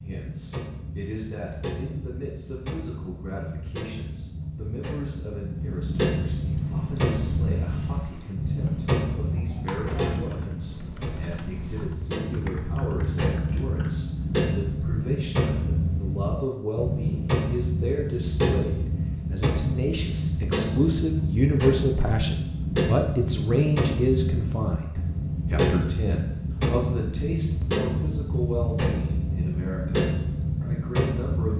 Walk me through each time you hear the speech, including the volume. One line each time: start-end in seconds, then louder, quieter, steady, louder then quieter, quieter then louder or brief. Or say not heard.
0.0-31.5 louder then quieter.